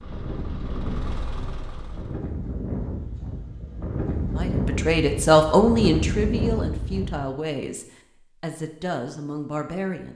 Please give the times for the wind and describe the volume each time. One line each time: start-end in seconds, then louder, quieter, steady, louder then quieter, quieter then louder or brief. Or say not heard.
0.0-7.3 louder.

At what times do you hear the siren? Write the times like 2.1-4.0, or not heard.
not heard.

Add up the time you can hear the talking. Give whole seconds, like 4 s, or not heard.
6 s.